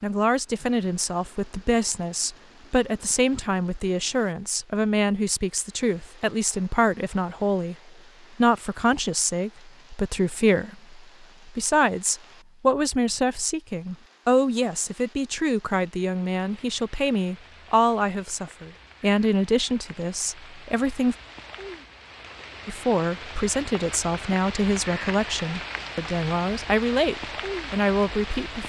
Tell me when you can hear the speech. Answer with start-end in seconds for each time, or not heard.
0.0-7.8, 8.3-21.1, 22.6-28.6.